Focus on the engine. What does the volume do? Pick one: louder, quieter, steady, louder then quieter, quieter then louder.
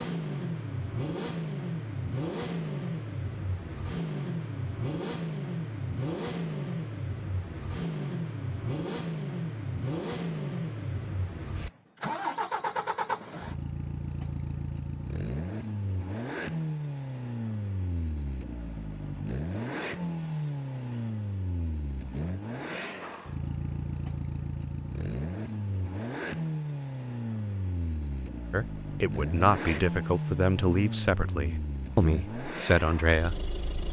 steady.